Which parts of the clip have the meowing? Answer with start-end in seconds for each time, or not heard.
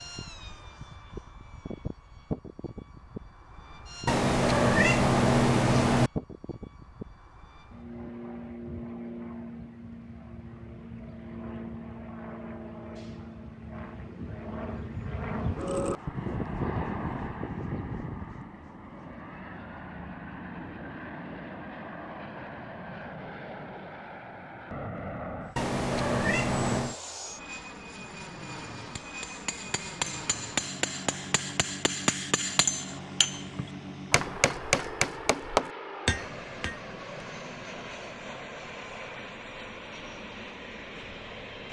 4.0-6.1, 25.6-26.9.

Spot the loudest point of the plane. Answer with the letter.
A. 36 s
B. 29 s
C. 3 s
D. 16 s
D.